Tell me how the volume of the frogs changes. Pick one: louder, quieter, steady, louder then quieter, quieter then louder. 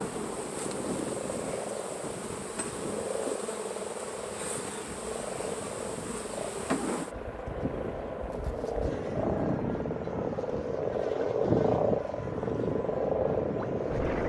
louder.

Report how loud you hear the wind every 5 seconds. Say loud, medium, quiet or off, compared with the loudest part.
medium, loud, loud.